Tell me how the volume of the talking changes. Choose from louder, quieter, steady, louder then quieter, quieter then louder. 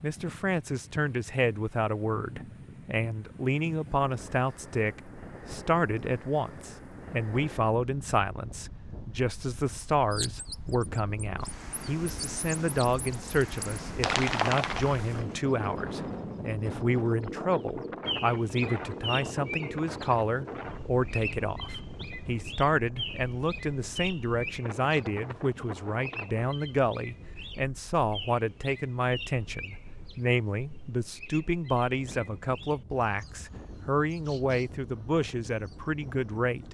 steady.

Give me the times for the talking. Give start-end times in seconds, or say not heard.
0.0-36.6.